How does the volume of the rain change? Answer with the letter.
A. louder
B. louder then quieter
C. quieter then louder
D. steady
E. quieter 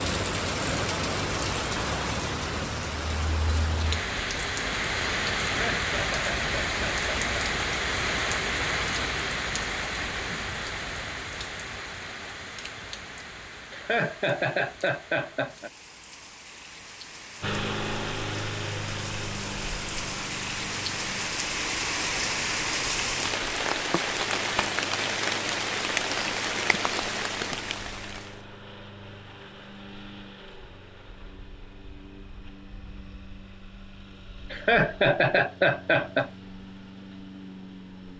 C.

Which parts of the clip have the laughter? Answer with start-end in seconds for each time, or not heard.
5.5-7.3, 13.7-15.7, 34.5-36.3.